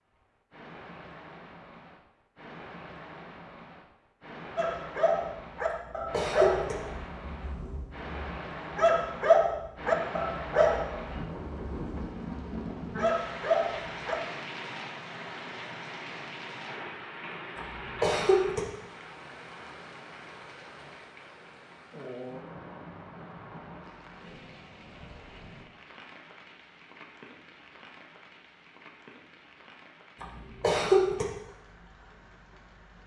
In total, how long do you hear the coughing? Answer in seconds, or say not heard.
3 s.